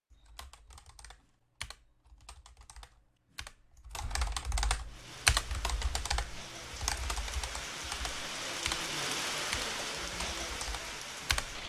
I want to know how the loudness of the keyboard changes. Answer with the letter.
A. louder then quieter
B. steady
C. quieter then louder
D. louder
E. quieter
A.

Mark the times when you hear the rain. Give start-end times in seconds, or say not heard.
4.8-11.6.